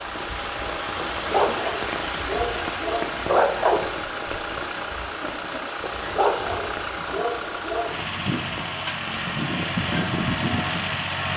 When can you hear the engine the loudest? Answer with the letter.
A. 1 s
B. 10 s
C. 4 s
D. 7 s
B.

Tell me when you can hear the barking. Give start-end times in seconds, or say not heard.
1.0-3.9, 5.8-8.0.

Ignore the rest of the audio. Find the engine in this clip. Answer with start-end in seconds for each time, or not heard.
0.0-11.3.